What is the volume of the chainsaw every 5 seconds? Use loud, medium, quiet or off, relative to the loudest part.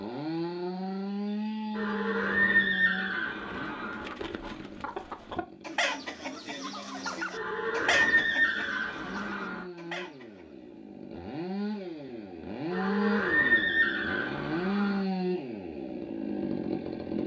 loud, quiet, loud, loud.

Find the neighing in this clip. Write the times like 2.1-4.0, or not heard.
1.7-4.0, 7.3-9.7, 12.7-15.1.